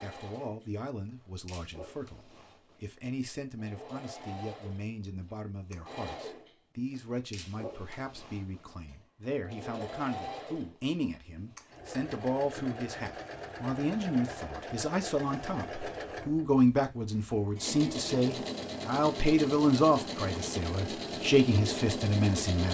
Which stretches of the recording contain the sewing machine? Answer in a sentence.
The sewing machine can be heard from 0.0 to 22.6 s.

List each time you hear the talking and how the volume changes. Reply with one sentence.
You can hear the talking from 0.0 to 22.6 s, getting louder.